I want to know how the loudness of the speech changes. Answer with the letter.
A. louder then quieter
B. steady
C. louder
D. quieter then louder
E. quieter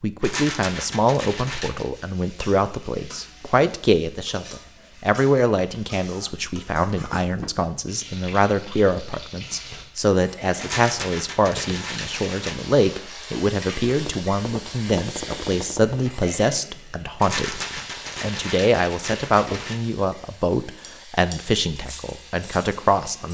B.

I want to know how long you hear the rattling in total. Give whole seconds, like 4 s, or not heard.
6 s.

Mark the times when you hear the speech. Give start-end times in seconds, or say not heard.
0.0-23.2.